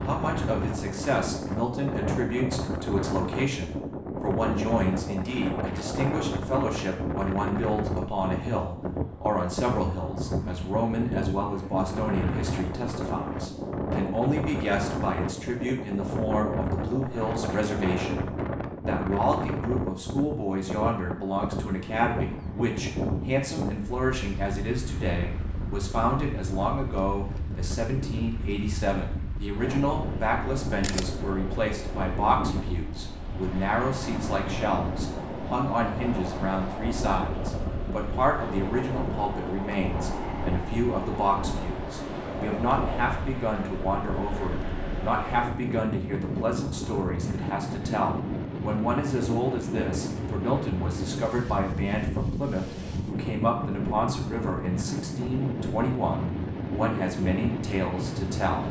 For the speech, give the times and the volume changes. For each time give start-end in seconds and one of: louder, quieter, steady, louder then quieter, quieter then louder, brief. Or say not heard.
0.0-58.6 steady.